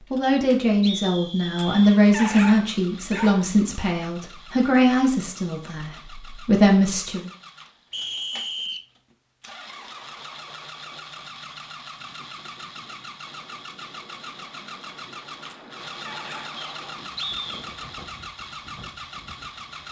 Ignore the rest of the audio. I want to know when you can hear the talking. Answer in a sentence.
The talking can be heard from 0.1 to 7.3 s.